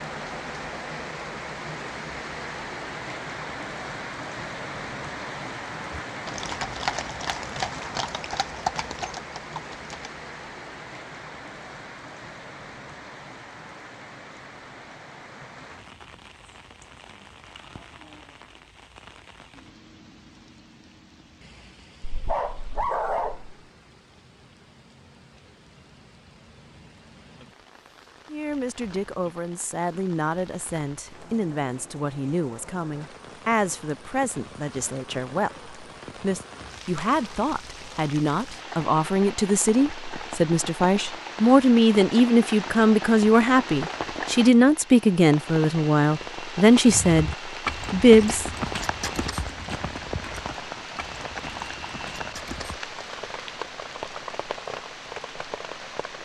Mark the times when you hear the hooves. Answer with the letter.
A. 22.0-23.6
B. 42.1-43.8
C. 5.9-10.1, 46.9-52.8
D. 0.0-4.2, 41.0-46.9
C.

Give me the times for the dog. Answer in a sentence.
You can hear the dog from 22.0 to 23.6 s.